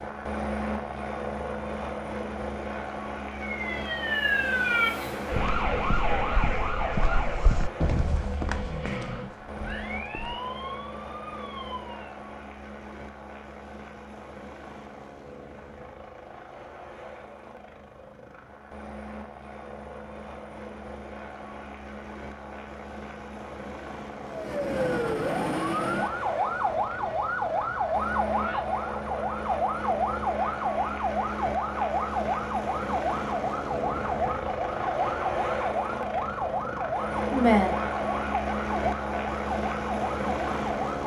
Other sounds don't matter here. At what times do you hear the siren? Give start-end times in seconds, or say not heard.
3.4-12.2, 24.2-41.0.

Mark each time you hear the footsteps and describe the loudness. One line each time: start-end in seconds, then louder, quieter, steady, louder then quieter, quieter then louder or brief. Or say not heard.
5.3-10.4 louder then quieter.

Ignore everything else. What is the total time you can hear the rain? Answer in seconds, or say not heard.
not heard.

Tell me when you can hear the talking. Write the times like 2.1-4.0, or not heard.
37.3-37.8.